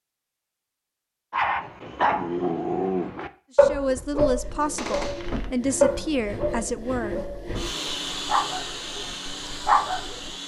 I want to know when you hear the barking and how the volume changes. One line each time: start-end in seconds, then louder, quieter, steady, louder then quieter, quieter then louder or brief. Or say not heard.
1.3-10.3 quieter then louder.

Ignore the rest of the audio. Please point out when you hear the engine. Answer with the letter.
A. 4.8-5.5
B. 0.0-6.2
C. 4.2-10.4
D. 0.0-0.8
C.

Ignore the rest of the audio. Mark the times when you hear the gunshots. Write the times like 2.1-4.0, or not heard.
4.8-5.5.